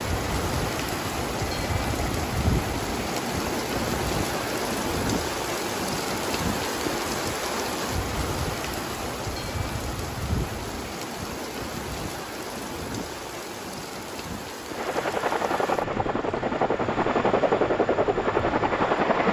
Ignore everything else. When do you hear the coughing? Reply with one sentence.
The coughing can't be heard in this clip.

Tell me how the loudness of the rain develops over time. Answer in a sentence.
The volume of the rain goes down.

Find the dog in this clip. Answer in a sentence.
You can't hear the dog here.